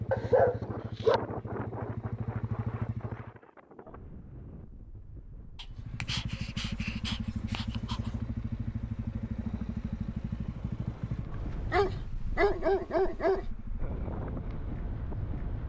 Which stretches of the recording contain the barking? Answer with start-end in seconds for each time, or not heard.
0.1-1.2, 5.5-8.0, 11.7-13.4.